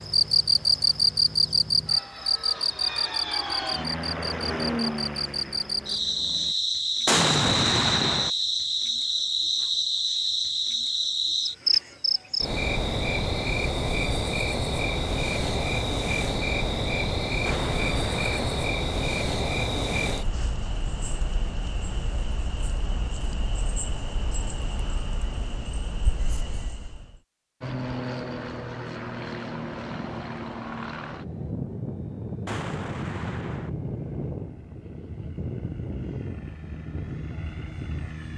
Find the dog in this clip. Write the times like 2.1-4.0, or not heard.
not heard.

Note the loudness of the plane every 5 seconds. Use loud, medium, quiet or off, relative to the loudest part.
loud, medium, off, off, off, loud, loud, loud.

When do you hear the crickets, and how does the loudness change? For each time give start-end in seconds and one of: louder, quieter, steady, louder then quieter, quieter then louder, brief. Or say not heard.
0.0-27.2 quieter.